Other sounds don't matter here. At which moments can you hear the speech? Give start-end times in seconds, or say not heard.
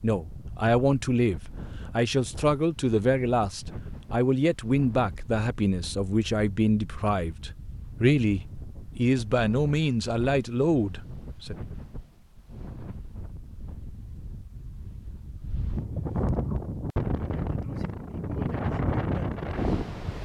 0.0-11.6.